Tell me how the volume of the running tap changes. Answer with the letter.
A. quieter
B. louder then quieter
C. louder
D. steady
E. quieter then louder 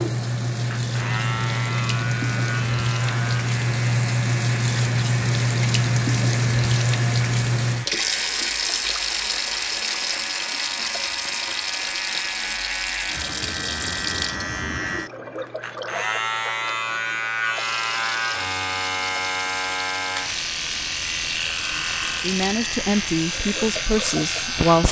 A.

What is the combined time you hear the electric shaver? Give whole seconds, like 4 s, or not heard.
25 s.